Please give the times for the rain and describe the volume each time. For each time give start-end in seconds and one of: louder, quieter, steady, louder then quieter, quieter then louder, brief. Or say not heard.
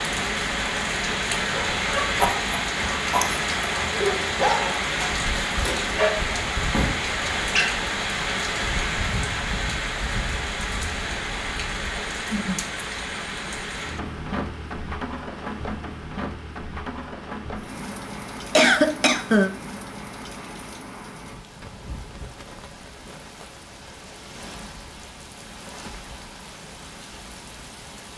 0.0-28.1 quieter.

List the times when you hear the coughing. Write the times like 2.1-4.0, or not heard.
18.6-19.5.